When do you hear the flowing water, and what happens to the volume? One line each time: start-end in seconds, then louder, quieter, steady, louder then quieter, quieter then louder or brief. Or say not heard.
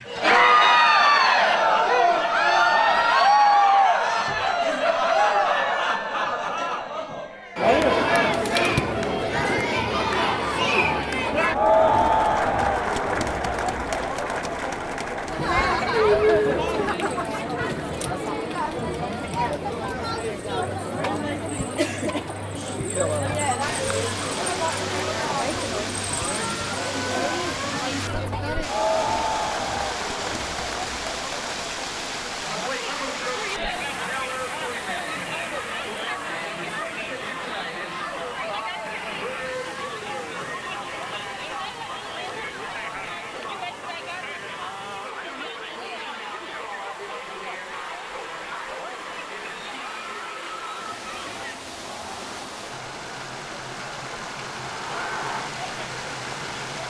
23.6-56.8 quieter then louder.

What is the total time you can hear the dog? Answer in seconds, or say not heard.
not heard.